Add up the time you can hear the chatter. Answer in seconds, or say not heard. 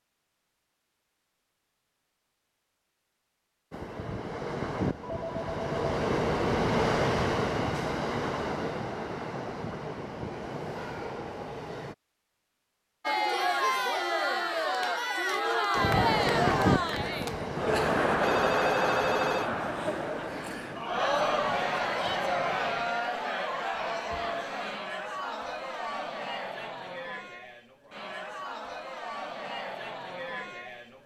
18 s.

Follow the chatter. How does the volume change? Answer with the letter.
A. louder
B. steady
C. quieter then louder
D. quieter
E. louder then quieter
D.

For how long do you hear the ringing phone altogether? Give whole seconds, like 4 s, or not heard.
2 s.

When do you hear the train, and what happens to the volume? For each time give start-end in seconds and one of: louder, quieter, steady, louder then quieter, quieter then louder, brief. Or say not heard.
3.7-11.9 louder then quieter
15.8-22.9 quieter.